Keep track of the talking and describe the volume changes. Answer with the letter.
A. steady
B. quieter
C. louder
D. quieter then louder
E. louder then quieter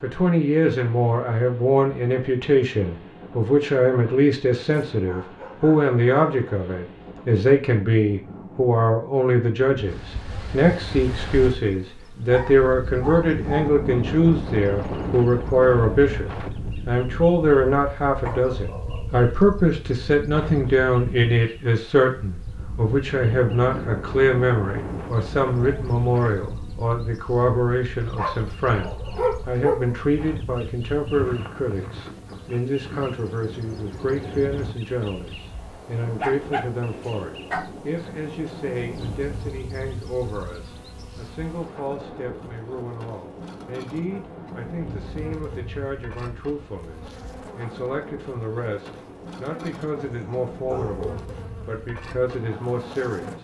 B.